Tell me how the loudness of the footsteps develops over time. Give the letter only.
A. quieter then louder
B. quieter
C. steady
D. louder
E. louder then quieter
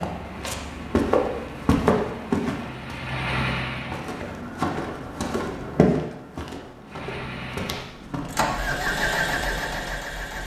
B.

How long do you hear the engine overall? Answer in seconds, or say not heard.
8 s.